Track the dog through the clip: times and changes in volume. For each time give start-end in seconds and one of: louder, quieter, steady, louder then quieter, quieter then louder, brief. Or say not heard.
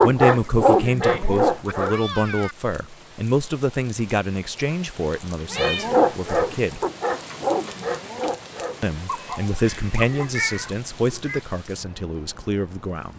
0.0-2.0 brief
5.5-10.8 quieter.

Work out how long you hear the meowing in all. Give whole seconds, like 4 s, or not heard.
4 s.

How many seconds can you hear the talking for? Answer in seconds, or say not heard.
11 s.